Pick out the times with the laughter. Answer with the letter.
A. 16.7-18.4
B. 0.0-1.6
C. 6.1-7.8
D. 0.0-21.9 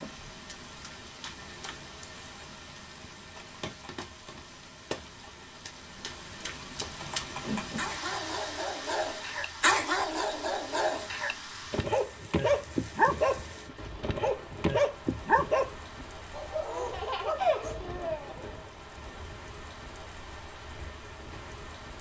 A.